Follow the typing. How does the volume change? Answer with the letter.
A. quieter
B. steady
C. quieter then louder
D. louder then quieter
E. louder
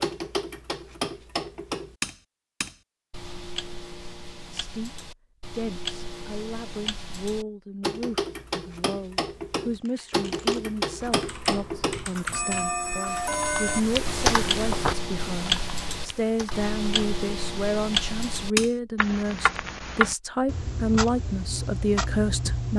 D.